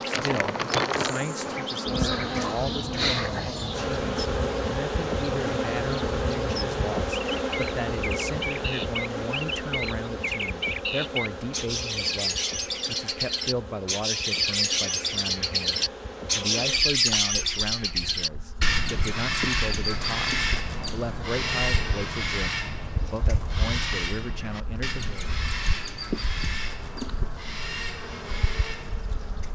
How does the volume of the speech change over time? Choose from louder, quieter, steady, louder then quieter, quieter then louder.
steady.